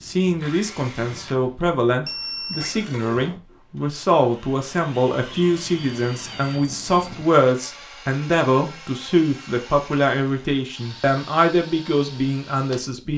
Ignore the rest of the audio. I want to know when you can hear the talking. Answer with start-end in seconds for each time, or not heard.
0.0-13.1.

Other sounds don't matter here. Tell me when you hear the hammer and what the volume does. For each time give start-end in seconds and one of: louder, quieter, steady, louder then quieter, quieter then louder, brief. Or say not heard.
not heard.